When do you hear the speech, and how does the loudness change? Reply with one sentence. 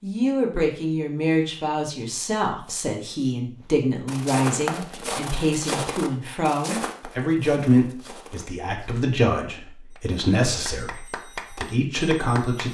You can hear the speech from 0.0 to 12.6 s, at a steady volume.